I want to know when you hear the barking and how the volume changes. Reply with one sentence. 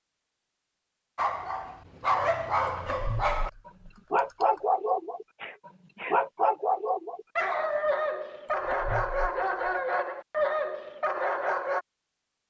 You can hear the barking from 1.1 to 11.8 s, at a steady volume.